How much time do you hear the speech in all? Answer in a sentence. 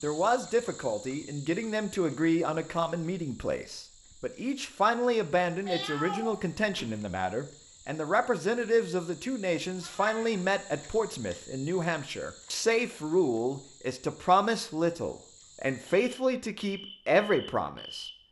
The speech can be heard for 18 seconds in total.